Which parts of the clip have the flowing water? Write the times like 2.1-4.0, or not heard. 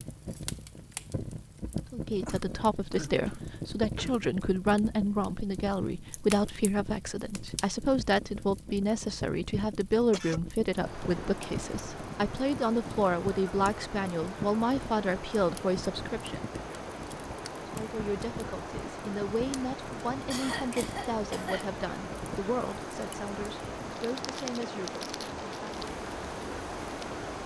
10.7-27.4.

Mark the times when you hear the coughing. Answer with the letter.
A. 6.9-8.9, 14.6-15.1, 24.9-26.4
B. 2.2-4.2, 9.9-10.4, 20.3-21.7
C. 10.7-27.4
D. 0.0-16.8
B.